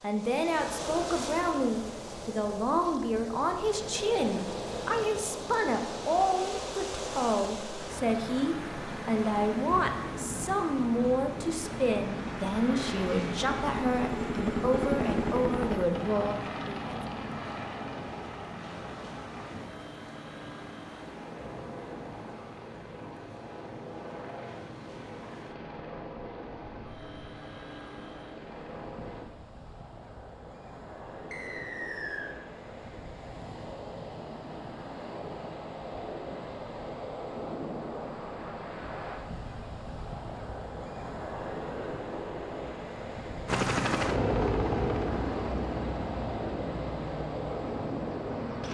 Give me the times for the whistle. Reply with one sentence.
The whistle can be heard from 31.3 to 32.3 s.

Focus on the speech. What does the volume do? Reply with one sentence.
The loudness of the speech stays about the same.